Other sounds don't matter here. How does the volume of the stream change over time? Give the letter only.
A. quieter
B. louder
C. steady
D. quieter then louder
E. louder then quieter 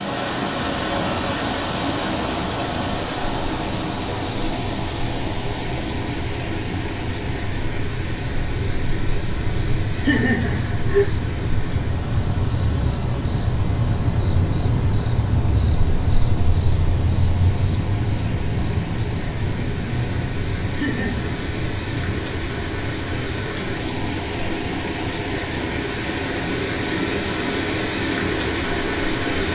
D.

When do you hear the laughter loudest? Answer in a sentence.
The loudest moment of the laughter is at 10 seconds.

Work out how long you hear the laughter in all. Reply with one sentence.
You can hear the laughter for 2 seconds altogether.